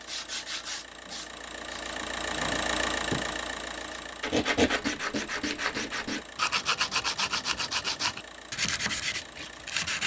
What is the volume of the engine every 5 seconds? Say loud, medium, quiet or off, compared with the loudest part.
loud, medium.